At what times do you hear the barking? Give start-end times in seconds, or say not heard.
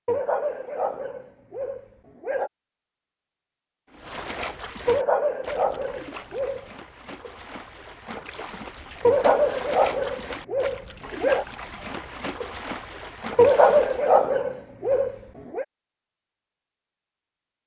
0.1-2.5, 4.8-6.7, 9.0-11.4, 13.3-15.7.